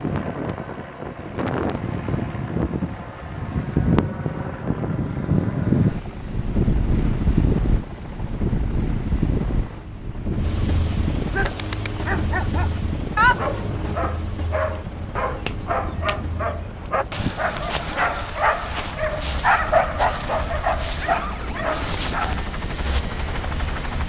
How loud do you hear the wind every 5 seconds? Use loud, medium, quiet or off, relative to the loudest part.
loud, loud, medium, quiet, quiet.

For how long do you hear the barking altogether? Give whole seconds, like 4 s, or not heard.
12 s.